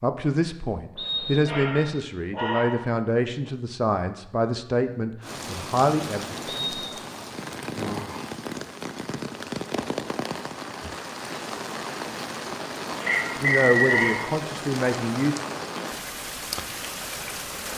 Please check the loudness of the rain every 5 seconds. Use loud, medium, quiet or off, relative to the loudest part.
off, loud, loud, loud.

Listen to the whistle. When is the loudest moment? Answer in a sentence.
The volume of the whistle peaks at 14 seconds.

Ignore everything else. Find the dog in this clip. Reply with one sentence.
You can hear the dog from 1.4 to 3.0 s and from 12.9 to 14.3 s.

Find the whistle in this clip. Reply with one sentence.
The whistle can be heard from 0.9 to 1.9 s, from 6.5 to 7.0 s and from 13.1 to 14.2 s.